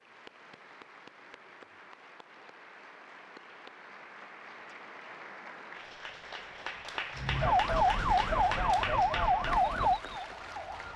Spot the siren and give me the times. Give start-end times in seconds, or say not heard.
7.2-10.9.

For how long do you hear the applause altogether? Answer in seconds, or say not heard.
11 s.